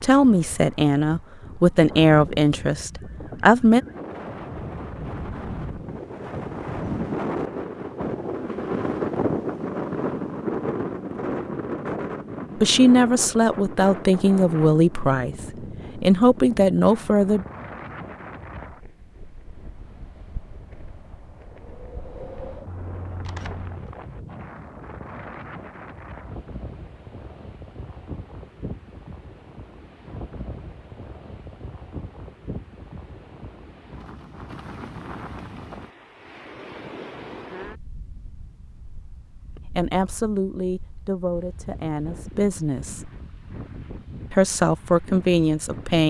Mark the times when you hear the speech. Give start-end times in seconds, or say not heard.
0.0-3.8, 12.6-17.4, 39.6-43.1, 44.3-46.0.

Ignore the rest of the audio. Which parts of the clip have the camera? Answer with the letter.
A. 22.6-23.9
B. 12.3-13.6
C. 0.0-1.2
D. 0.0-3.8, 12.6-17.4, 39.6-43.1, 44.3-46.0
A.